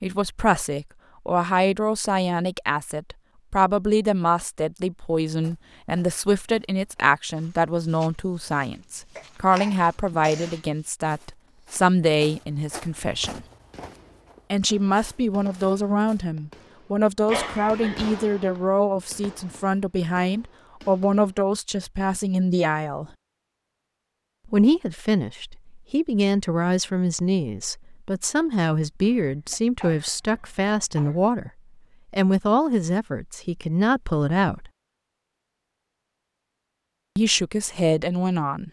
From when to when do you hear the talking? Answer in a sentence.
You can hear the talking from 0.0 to 13.4 s, from 14.5 to 23.1 s, from 24.4 to 31.5 s, from 32.1 to 34.7 s and from 37.1 to 38.6 s.